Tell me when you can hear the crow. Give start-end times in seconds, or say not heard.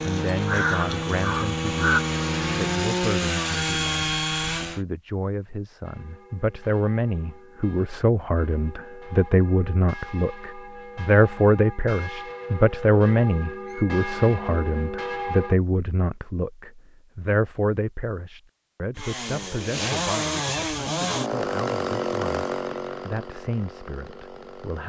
0.0-2.0.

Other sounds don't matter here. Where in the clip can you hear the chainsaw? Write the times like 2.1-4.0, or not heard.
0.0-4.8, 18.9-24.8.